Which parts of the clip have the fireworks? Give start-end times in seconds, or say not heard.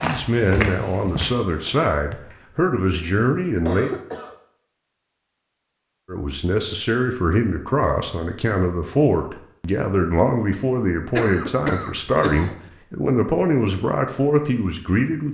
not heard.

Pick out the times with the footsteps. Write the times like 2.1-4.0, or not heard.
0.0-2.6.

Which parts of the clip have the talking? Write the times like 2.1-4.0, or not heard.
0.0-3.9, 6.0-15.3.